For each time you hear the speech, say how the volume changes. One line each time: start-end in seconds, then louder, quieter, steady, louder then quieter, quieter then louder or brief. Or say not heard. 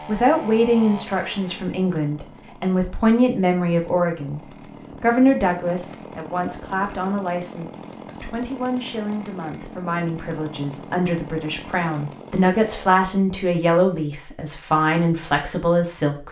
0.1-16.2 quieter then louder.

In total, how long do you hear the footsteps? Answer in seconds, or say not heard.
not heard.